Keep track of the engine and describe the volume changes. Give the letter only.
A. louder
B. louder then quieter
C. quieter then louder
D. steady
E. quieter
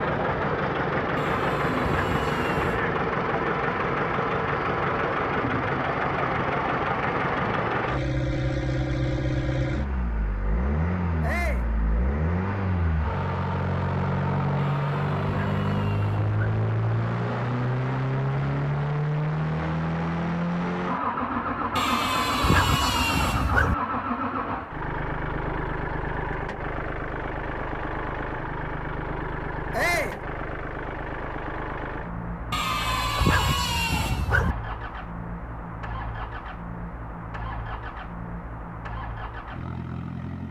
E.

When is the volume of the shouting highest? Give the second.
30 s.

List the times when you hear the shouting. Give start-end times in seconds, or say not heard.
11.2-11.7, 29.7-30.2.